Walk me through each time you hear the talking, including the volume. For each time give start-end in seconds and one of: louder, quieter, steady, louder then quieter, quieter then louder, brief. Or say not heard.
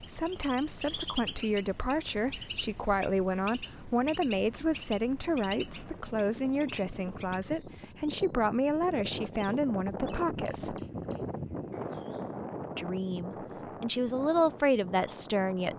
0.0-10.8 steady
12.8-15.7 brief.